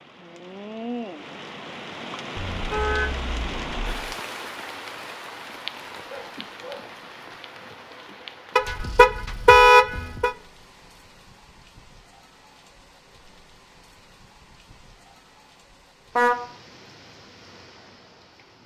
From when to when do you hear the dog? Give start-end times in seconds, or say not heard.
6.0-6.9.